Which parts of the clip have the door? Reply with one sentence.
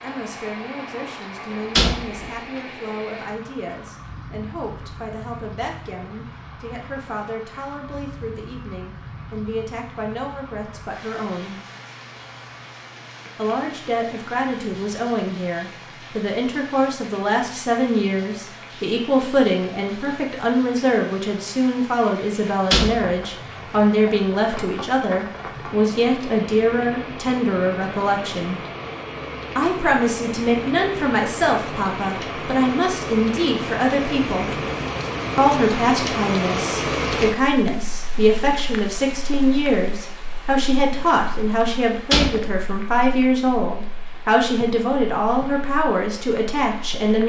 You can hear the door from 1.5 to 2.6 s, from 22.7 to 23.6 s and from 42.1 to 42.6 s.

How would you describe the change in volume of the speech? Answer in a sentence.
The volume of the speech goes up.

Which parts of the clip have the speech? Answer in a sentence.
The speech can be heard from 0.0 to 11.6 s, from 13.3 to 28.6 s, from 29.6 to 34.6 s and from 35.4 to 47.2 s.